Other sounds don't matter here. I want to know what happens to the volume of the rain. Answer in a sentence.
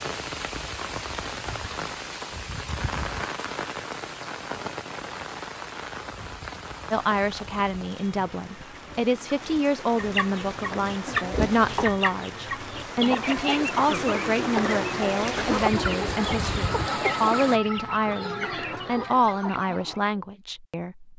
The loudness of the rain goes down, then up.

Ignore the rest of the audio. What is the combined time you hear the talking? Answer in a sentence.
You can hear the talking for 14 seconds altogether.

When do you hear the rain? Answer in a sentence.
You can hear the rain from 0.0 to 17.6 s.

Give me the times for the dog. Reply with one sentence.
The dog can't be heard in this clip.